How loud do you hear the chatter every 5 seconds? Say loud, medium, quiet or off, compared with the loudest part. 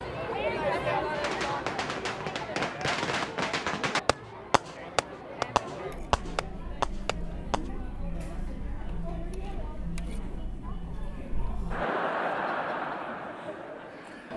loud, medium, loud.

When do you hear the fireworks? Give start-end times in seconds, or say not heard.
1.1-7.6.